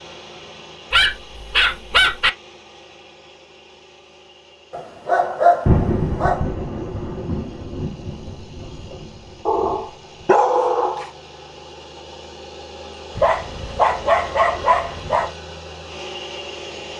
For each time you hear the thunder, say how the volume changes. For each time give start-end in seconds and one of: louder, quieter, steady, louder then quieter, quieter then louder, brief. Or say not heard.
5.7-10.2 quieter.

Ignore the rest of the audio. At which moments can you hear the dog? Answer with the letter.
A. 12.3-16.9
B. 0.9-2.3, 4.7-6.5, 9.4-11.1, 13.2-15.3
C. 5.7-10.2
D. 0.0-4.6
B.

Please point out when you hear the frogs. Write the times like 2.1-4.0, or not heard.
not heard.